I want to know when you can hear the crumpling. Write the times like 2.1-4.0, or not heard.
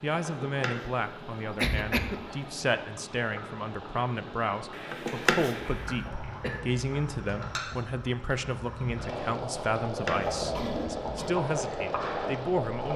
0.2-0.8, 4.9-5.5, 9.8-10.8.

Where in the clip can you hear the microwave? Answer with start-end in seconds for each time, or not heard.
not heard.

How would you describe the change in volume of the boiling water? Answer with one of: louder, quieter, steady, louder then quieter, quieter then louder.
louder.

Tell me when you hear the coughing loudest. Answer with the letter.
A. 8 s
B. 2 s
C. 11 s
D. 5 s
B.